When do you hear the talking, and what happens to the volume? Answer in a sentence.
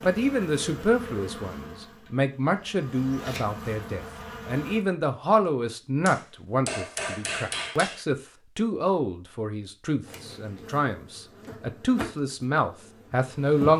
You can hear the talking from 0.0 to 13.7 s, at a steady volume.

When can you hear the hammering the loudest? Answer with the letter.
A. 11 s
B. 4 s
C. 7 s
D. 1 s
C.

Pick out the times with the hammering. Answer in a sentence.
The hammering can be heard from 6.0 to 8.1 s.